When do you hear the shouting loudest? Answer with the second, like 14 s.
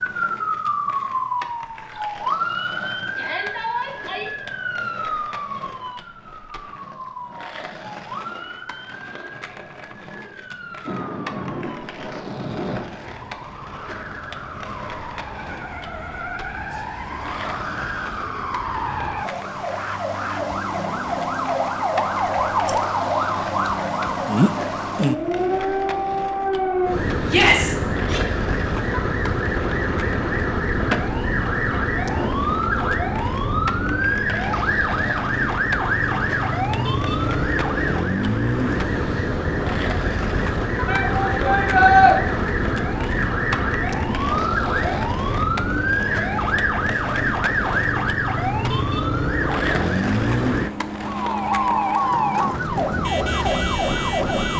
42 s.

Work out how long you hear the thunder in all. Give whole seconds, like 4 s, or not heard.
2 s.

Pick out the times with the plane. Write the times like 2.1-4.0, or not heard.
not heard.